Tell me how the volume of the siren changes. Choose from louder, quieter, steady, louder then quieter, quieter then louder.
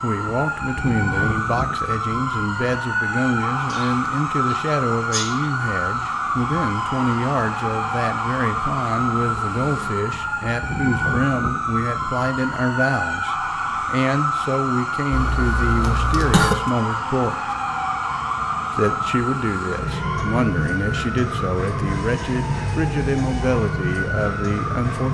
steady.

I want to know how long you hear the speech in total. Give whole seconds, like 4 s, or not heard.
24 s.